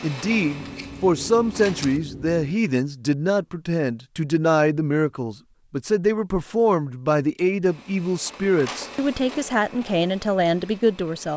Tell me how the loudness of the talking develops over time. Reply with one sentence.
The loudness of the talking stays about the same.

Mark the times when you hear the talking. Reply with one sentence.
You can hear the talking from 0.0 to 11.3 s.